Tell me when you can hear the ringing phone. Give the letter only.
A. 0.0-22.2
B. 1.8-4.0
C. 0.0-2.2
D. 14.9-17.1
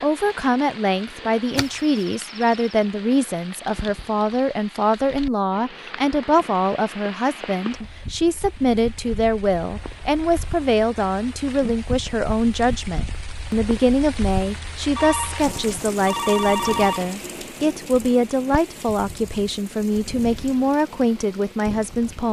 D.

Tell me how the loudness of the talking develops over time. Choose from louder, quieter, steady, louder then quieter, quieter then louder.
steady.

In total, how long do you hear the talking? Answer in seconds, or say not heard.
22 s.